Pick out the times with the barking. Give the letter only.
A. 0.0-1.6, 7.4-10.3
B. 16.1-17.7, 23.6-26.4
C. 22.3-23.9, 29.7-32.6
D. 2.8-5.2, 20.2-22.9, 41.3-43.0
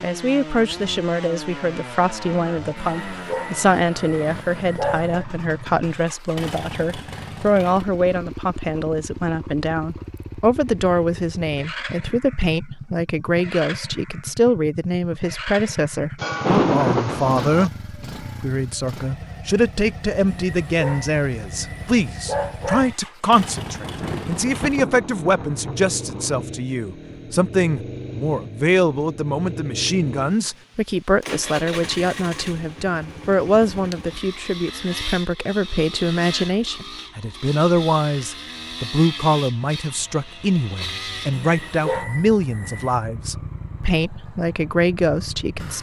D.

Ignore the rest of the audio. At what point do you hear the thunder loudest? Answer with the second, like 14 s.
17 s.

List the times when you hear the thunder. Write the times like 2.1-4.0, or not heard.
16.1-17.7, 23.6-26.4.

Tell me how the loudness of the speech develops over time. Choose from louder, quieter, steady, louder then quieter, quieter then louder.
steady.